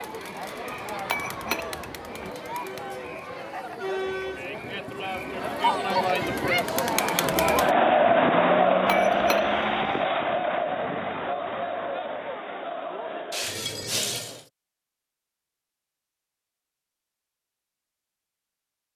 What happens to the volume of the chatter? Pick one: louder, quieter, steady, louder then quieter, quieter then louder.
louder then quieter.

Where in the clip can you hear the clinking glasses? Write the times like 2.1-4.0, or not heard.
1.1-2.3, 8.8-10.1, 13.3-14.4.